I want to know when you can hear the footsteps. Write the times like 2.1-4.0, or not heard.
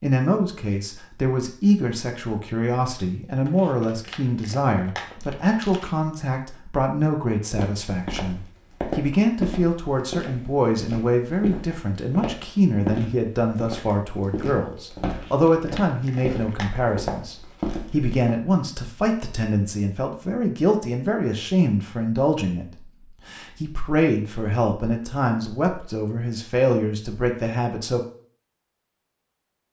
7.5-18.1.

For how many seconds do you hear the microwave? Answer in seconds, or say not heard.
not heard.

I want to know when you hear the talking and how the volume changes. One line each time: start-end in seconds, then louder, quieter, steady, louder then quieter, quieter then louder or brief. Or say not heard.
0.0-28.0 steady.